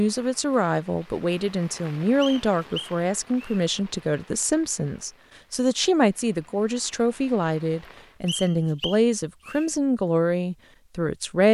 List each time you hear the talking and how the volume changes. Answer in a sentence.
You can hear the talking from 0.0 to 11.4 s, at a steady volume.